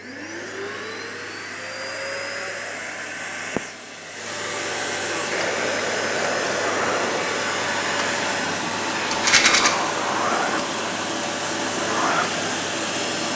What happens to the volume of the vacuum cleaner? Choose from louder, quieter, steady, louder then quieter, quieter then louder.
louder.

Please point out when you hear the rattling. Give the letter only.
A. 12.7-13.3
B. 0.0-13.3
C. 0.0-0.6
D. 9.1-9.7
D.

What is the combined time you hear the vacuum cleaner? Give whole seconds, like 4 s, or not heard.
13 s.